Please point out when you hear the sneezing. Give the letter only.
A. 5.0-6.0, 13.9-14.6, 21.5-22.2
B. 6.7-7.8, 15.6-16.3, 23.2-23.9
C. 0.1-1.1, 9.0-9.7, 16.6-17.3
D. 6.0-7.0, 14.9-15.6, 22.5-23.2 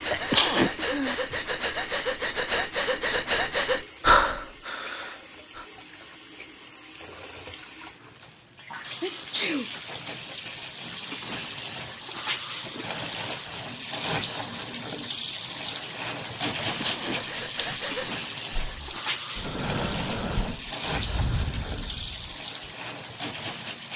C.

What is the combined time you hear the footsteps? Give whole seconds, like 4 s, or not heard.
not heard.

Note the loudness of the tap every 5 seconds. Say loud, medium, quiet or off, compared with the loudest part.
medium, medium, loud, loud, loud.